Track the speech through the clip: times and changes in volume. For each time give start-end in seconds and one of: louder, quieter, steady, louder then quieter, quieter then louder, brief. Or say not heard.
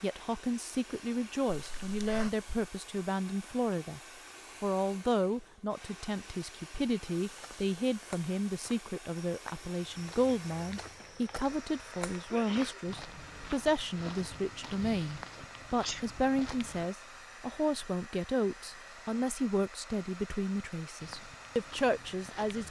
0.0-4.0 steady
4.6-22.6 steady.